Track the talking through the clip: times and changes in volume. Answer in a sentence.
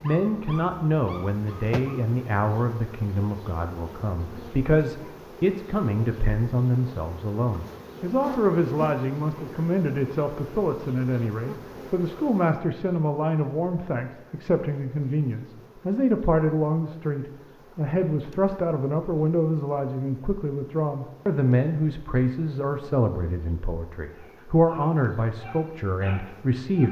You can hear the talking from 0.0 to 26.8 s, at a steady volume.